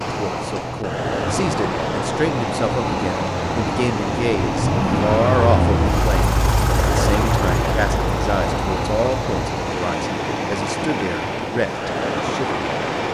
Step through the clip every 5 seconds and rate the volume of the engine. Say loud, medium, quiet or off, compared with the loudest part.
loud, loud, medium.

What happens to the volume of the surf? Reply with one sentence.
The loudness of the surf stays about the same.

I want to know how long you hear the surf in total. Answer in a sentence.
The surf can be heard for 13 seconds in total.